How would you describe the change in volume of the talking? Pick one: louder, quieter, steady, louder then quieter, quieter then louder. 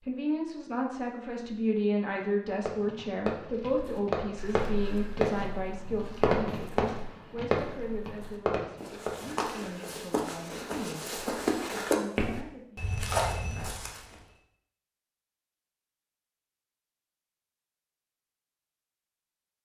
quieter.